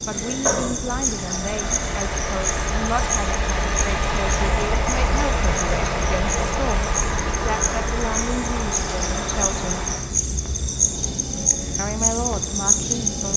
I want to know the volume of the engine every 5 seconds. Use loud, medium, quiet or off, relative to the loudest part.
loud, loud, medium.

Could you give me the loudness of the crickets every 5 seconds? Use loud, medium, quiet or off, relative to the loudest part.
medium, medium, loud.